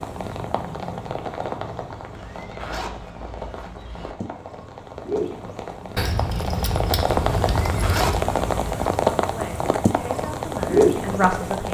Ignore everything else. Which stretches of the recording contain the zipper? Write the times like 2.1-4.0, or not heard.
2.1-4.2, 7.4-9.0.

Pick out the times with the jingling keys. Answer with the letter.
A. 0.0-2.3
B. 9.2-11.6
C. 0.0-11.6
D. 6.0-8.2
D.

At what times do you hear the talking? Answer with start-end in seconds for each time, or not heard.
9.2-11.6.